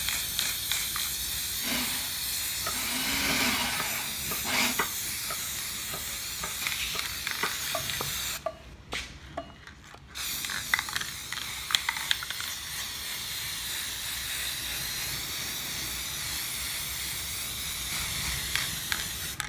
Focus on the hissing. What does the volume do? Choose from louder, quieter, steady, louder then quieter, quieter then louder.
steady.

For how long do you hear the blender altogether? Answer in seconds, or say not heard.
3 s.